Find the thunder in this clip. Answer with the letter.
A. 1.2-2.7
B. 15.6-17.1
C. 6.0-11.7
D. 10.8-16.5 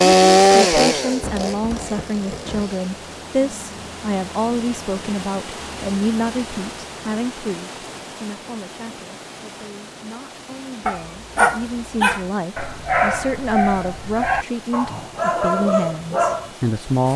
A.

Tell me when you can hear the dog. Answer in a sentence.
The dog can be heard from 10.8 to 16.5 s.